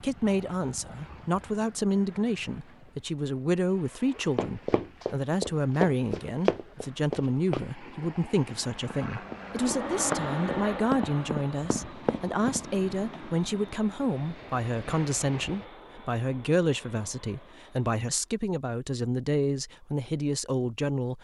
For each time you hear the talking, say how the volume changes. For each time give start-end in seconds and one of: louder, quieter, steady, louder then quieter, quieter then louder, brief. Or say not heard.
0.0-21.1 steady.